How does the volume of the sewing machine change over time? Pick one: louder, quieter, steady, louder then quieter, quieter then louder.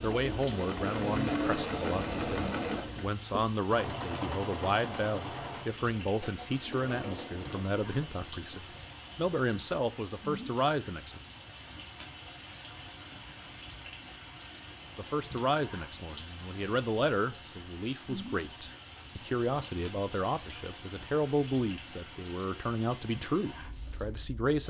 quieter.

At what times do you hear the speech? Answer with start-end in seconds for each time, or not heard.
0.0-11.2, 14.9-24.6.